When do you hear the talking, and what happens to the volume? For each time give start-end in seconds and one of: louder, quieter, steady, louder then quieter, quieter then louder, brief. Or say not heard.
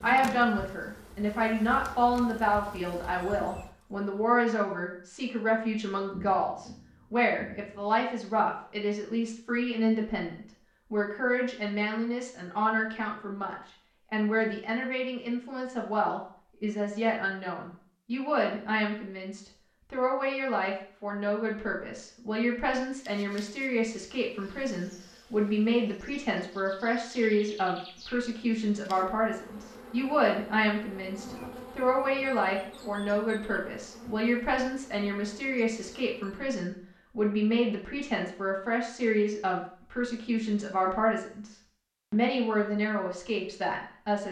0.0-44.2 steady.